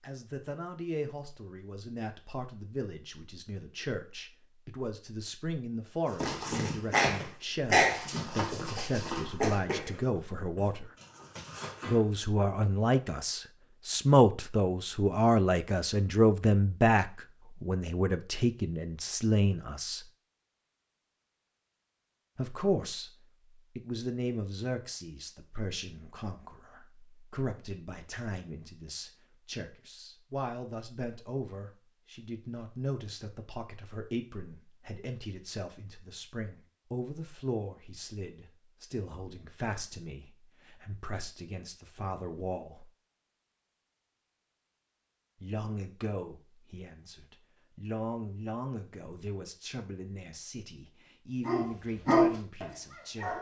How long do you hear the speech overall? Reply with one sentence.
The speech can be heard for 47 seconds in total.